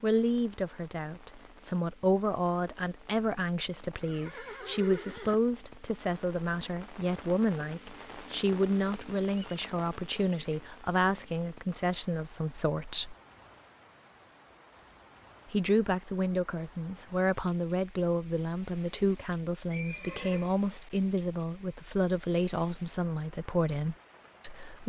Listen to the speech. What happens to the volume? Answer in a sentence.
The volume of the speech stays about the same.